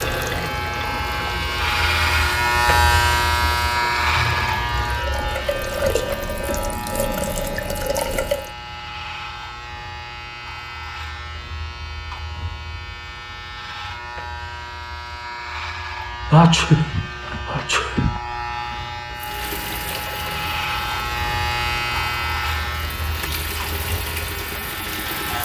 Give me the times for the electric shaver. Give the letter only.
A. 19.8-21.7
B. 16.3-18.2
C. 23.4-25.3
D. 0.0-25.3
D.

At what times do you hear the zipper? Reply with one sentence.
You can't hear the zipper here.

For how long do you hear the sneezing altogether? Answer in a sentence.
You can hear the sneezing for 2 seconds altogether.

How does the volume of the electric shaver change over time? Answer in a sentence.
The volume of the electric shaver goes down, then up.